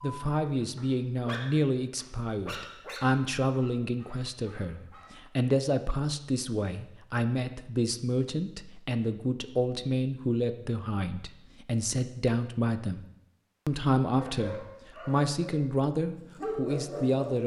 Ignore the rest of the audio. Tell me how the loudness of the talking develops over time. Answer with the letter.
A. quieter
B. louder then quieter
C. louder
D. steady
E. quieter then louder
D.